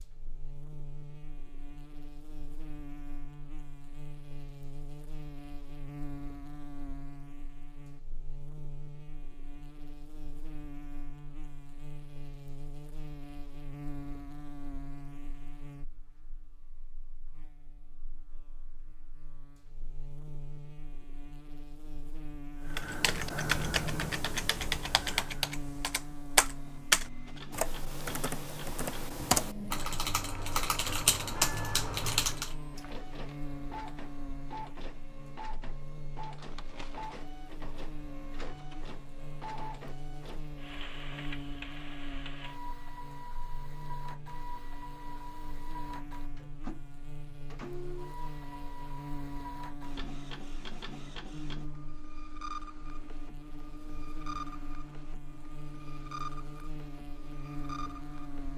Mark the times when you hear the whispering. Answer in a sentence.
You can't hear the whispering here.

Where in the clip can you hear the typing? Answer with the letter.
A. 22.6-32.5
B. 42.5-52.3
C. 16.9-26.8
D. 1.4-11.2
A.